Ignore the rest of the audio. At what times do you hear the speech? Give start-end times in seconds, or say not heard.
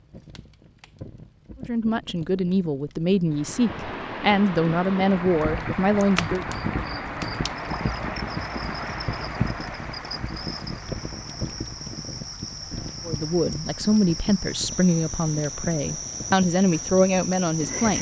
1.6-6.5, 13.1-17.9.